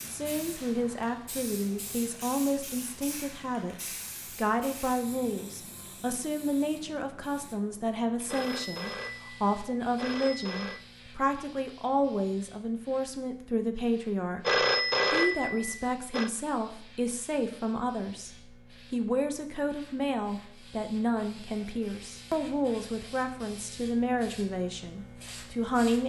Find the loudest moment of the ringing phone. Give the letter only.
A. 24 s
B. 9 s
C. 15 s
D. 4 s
C.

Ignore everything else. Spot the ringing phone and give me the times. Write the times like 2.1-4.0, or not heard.
8.2-10.8, 14.4-16.3.